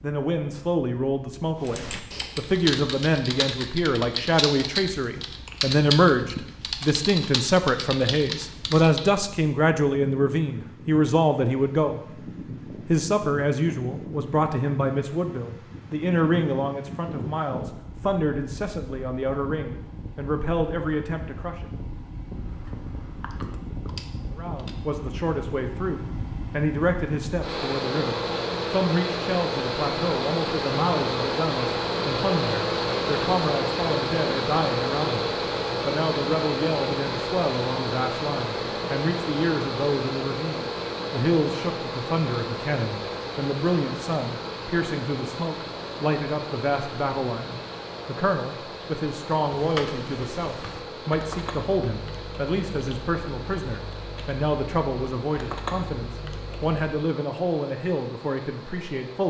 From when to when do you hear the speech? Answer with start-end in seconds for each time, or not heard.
0.0-21.6, 24.4-59.2.